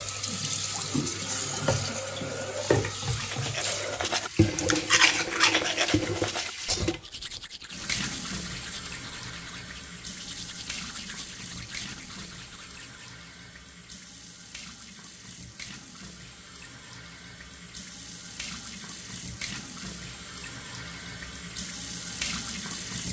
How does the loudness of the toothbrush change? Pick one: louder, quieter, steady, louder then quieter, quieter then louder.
quieter.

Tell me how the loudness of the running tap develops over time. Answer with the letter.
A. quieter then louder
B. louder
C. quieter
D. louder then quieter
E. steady
A.